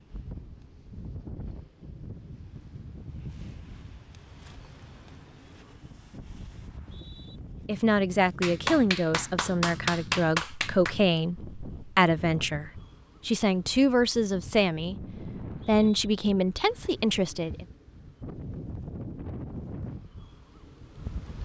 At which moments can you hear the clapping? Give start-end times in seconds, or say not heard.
8.4-10.9.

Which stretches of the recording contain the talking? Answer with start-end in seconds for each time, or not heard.
7.7-15.1, 15.7-17.6.